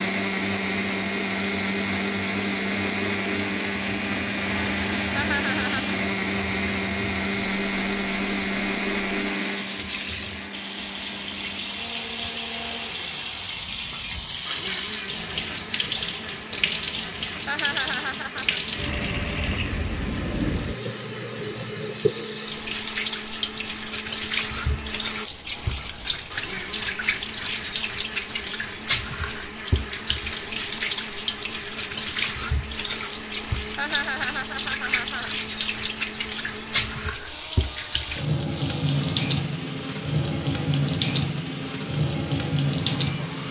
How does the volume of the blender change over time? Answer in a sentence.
The loudness of the blender goes down.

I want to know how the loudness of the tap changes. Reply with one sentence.
The volume of the tap goes up.